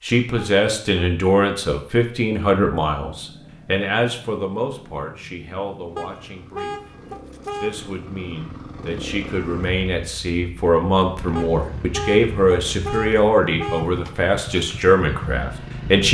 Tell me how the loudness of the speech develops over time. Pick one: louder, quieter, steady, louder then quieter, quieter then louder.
quieter then louder.